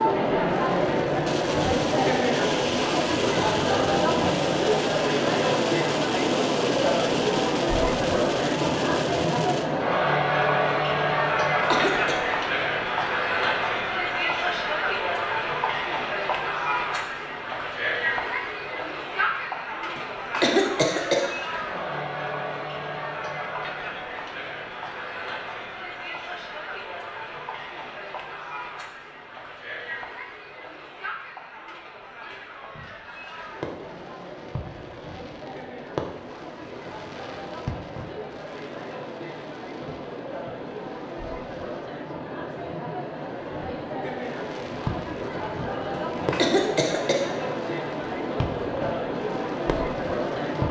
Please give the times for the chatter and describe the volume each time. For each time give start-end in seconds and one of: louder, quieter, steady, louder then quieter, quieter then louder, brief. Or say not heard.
0.0-50.6 quieter then louder.